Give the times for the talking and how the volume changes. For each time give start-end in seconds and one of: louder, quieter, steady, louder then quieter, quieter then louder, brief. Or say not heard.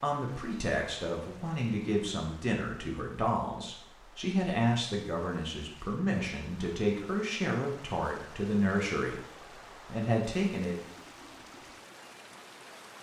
0.0-10.8 steady.